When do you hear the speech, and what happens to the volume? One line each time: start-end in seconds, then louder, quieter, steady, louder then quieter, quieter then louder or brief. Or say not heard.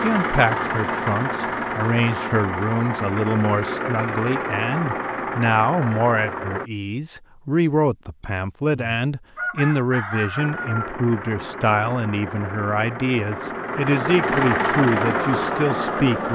0.0-16.3 steady.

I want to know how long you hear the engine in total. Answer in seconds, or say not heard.
13 s.